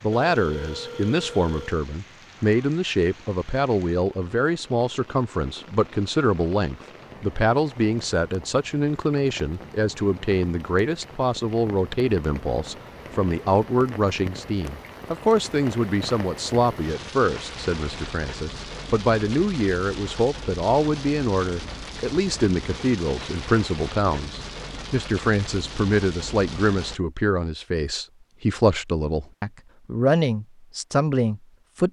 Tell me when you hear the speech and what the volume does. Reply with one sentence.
The speech can be heard from 0.0 to 31.8 s, at a steady volume.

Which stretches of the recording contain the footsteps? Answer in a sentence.
The footsteps can't be heard in this clip.